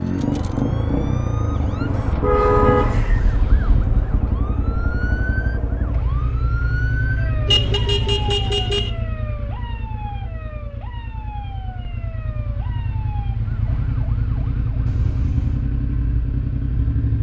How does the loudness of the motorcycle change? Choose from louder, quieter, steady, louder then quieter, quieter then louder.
quieter then louder.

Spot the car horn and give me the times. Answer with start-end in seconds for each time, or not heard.
2.2-4.2, 7.5-8.9, 14.8-15.7.